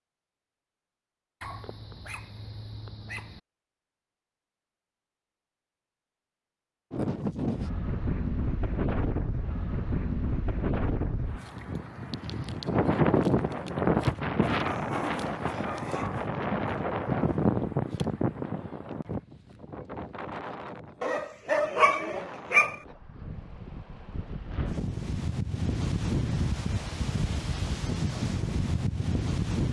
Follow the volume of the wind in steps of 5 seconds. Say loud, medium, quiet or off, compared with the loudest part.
off, loud, loud, loud, quiet, loud.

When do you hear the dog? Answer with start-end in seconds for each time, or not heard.
1.4-3.4, 14.4-16.3, 21.0-22.8.